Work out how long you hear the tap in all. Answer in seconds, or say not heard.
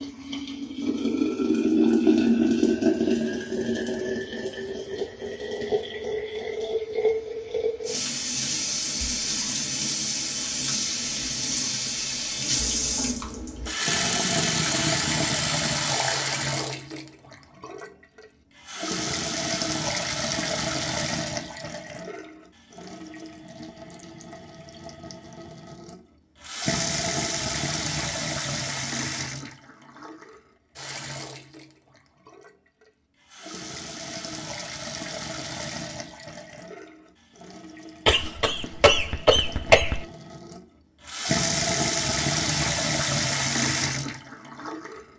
45 s.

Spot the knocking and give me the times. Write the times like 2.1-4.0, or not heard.
not heard.